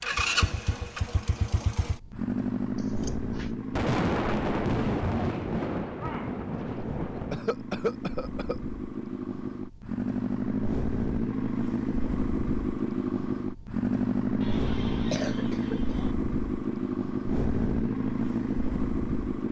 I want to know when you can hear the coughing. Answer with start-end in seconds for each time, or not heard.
2.8-3.5, 7.3-8.6, 14.4-16.1.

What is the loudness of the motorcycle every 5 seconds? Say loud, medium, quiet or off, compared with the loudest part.
loud, medium, loud, loud.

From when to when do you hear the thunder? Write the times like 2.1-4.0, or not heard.
3.8-7.3.